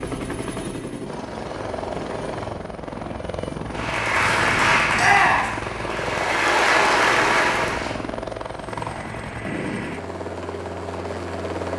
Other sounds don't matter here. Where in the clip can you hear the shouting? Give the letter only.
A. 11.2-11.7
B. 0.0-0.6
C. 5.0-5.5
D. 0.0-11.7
C.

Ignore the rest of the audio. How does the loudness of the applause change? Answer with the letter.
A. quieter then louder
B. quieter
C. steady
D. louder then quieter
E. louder
A.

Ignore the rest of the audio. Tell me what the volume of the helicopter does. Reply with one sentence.
The loudness of the helicopter stays about the same.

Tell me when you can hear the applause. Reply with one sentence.
The applause can be heard from 3.7 to 8.0 s.